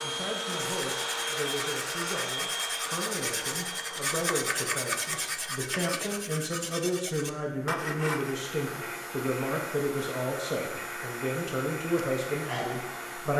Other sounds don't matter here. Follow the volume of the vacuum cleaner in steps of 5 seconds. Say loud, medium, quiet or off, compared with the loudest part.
loud, medium, loud.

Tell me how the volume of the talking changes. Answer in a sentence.
The loudness of the talking goes up.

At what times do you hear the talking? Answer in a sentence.
The talking can be heard from 0.0 to 13.3 s.